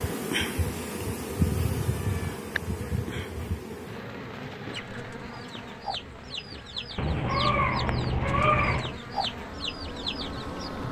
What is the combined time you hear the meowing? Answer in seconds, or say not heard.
3 s.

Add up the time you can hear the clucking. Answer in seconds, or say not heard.
6 s.